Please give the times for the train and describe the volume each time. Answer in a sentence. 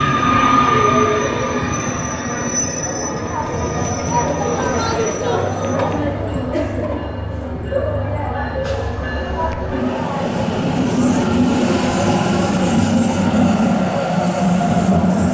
The train can be heard from 0.0 to 15.2 s, getting quieter then louder.